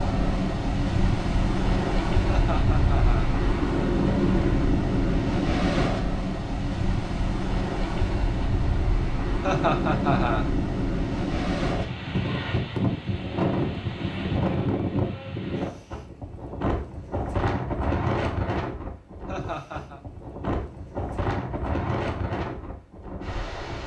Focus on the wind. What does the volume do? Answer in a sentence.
The loudness of the wind goes down.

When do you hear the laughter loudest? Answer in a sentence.
The loudest moment of the laughter is at 10 seconds.